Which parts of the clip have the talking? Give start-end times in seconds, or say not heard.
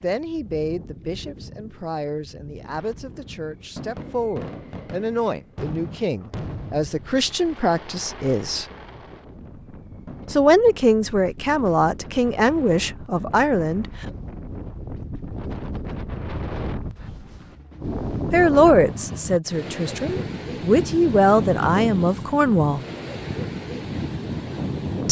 0.0-8.7, 10.3-14.1, 18.3-22.8.